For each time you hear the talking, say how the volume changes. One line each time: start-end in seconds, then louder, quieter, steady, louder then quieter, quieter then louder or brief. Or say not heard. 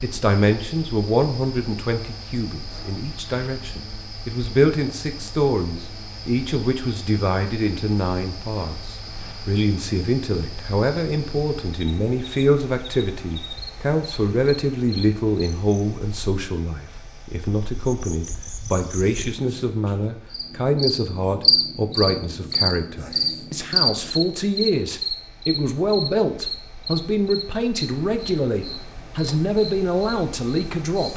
0.0-31.1 steady.